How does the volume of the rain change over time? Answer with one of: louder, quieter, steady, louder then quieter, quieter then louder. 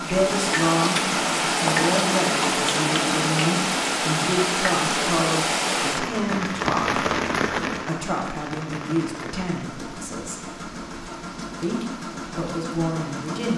quieter.